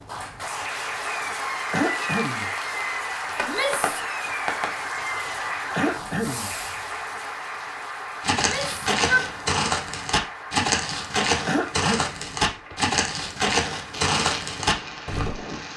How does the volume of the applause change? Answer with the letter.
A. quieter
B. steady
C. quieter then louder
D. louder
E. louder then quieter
A.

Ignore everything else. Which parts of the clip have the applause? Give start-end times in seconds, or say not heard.
0.0-15.7.